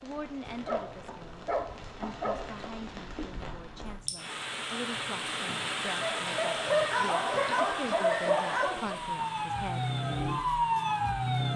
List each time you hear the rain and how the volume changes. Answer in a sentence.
You can hear the rain from 0.0 to 11.5 s, getting louder then quieter.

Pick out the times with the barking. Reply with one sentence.
The barking can be heard from 0.5 to 2.7 s and from 6.0 to 8.9 s.